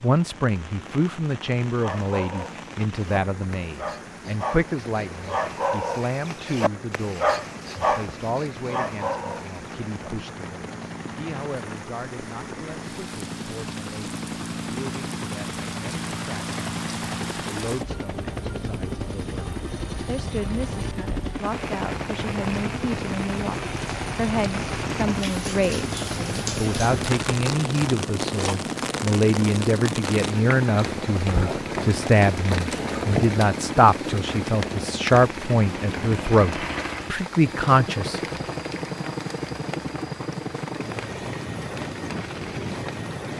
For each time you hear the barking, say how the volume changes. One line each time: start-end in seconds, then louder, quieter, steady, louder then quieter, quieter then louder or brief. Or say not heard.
1.6-9.9 louder then quieter.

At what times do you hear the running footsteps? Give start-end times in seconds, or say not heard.
not heard.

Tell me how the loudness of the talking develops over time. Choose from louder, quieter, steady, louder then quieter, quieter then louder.
quieter then louder.